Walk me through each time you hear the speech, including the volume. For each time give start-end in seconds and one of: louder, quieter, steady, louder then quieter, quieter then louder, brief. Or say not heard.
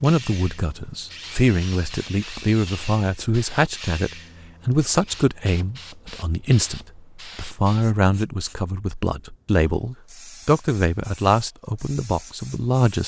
0.0-13.0 steady.